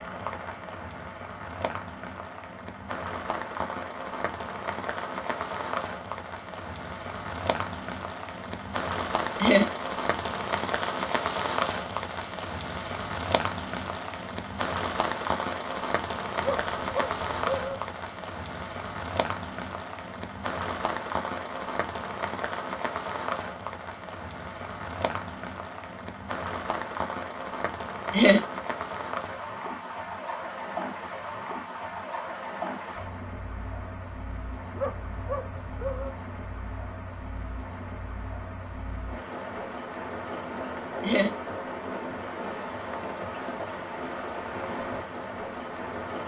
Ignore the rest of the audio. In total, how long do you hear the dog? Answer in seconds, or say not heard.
3 s.